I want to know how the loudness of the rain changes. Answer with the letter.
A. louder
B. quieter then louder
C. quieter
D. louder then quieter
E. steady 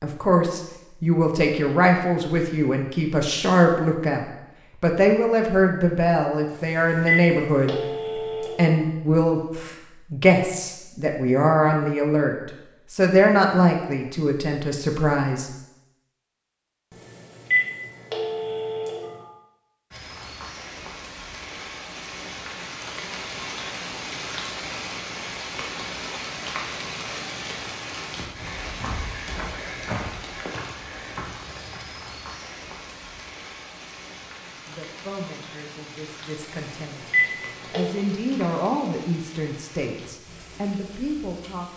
C.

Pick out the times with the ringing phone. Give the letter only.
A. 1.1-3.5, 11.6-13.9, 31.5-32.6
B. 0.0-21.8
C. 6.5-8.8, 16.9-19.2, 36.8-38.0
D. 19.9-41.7
C.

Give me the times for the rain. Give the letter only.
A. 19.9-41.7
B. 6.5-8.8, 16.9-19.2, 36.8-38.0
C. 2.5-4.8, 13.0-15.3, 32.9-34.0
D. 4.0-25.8
A.